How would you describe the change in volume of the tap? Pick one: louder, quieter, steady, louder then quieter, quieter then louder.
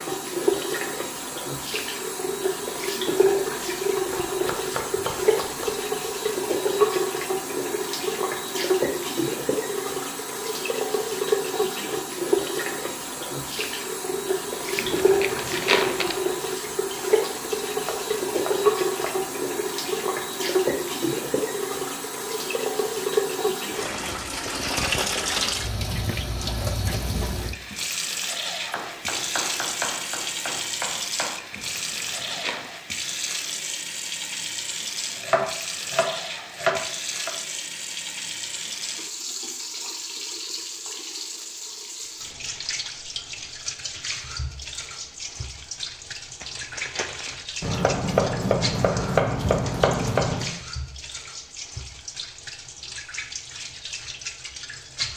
quieter.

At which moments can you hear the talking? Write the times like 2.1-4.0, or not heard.
not heard.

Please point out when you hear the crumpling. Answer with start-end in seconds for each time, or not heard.
14.8-16.1, 31.5-32.8, 46.4-47.5.